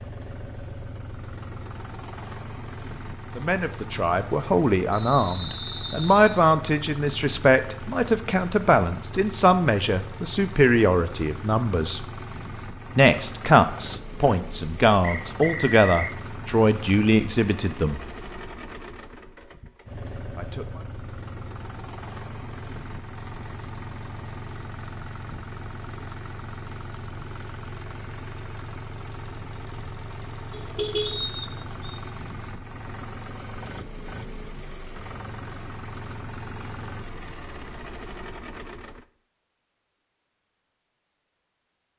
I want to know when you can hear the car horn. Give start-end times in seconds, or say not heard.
30.5-31.2.